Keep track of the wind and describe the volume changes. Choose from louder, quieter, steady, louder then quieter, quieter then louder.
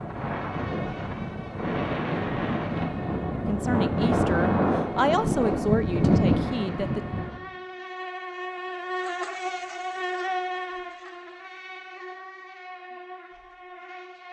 louder.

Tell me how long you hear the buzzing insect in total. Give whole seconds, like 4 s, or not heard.
14 s.